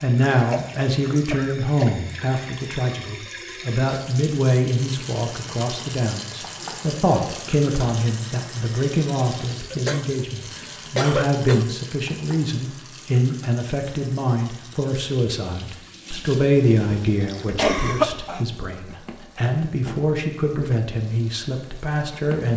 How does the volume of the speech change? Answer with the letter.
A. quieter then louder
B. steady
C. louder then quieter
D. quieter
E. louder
B.